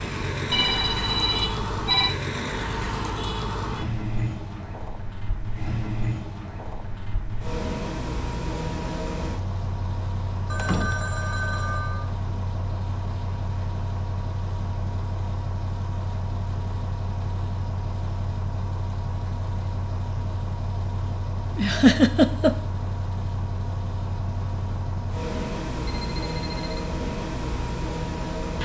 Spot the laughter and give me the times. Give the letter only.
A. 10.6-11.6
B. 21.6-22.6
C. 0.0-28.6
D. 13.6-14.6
B.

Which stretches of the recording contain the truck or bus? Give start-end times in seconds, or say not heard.
0.0-28.6.